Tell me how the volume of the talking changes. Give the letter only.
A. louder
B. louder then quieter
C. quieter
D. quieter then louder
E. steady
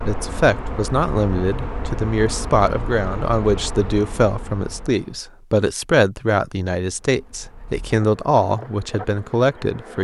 E.